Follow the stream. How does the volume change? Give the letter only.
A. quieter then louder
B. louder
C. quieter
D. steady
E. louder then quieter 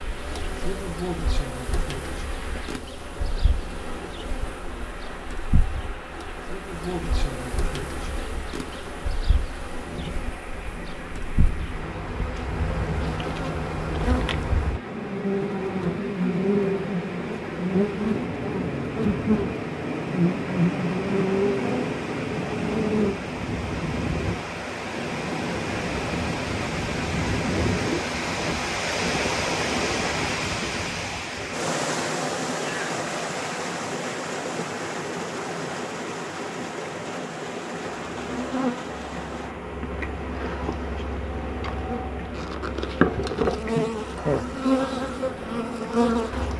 E.